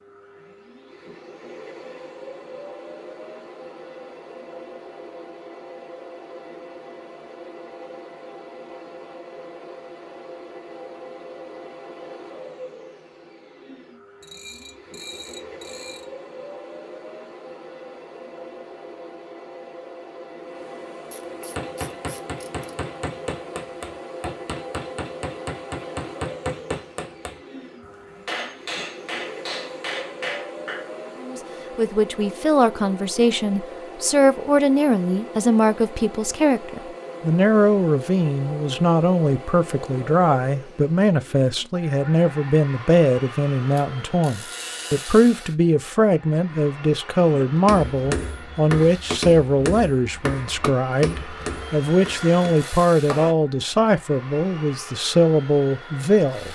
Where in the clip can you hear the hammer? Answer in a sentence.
The hammer can be heard from 21.6 to 30.9 s and from 47.2 to 53.4 s.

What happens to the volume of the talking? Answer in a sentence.
The volume of the talking stays about the same.